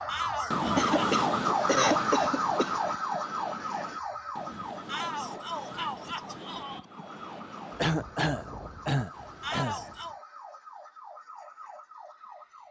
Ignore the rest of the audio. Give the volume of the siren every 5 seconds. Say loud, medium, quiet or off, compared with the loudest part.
loud, quiet, quiet.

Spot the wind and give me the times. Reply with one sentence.
The wind can be heard from 0.0 to 10.2 s.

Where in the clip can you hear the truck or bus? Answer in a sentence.
You can't hear the truck or bus here.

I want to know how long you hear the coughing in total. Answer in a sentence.
You can hear the coughing for 4 seconds altogether.